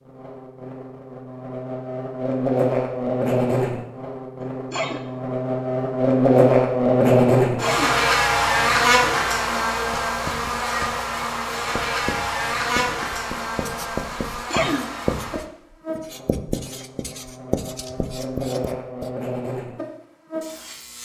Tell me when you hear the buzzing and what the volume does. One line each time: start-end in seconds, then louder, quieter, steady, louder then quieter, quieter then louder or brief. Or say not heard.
0.0-21.0 louder then quieter.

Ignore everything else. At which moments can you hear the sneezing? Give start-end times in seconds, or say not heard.
4.4-5.0, 7.5-8.0, 14.5-15.1.